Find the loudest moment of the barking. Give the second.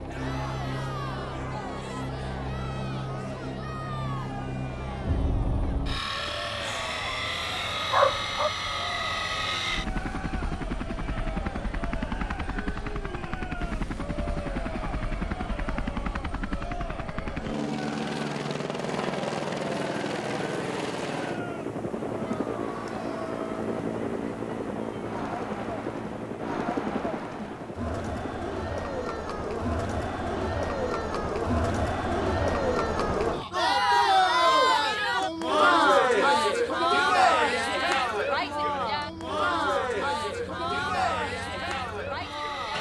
8 s.